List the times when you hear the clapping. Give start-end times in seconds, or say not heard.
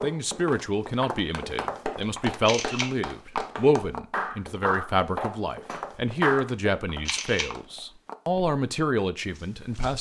1.3-6.5.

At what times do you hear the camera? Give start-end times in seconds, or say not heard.
2.5-2.9, 7.0-7.5.